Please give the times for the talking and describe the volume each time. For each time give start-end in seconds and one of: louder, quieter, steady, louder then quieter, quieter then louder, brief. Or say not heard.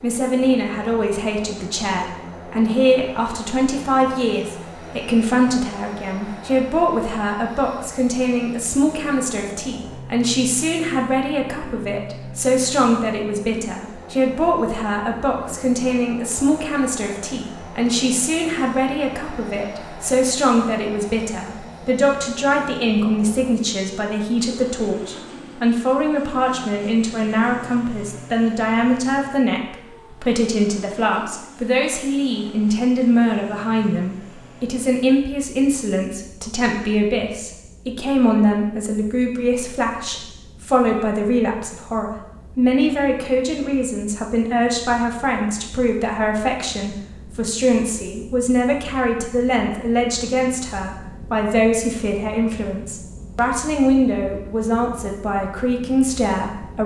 0.0-56.8 steady.